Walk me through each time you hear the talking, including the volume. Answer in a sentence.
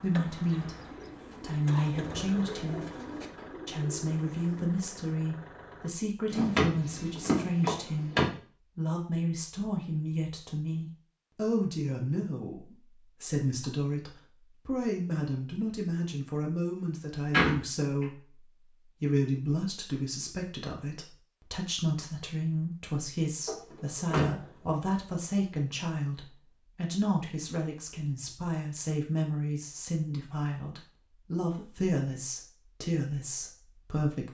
The talking can be heard briefly from 0.0 to 0.8 s; and from 1.4 to 34.3 s, at a steady volume.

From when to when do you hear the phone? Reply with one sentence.
You can't hear the phone here.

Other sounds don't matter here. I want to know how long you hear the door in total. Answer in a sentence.
You can hear the door for 4 seconds altogether.